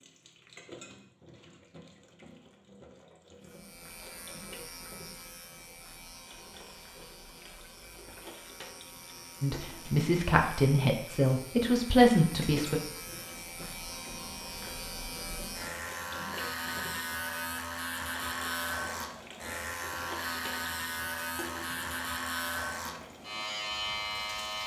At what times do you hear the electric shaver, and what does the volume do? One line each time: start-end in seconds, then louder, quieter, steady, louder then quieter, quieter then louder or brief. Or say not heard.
3.4-24.6 louder.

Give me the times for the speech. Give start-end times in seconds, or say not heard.
9.4-12.8.